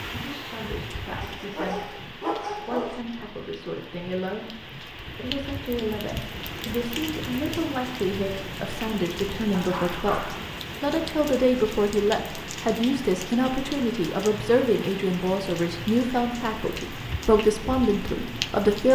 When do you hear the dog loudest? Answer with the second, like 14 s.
2 s.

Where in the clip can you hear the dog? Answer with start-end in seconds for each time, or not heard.
1.2-3.0, 9.5-10.6.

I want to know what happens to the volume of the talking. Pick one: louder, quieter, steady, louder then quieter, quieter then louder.
louder.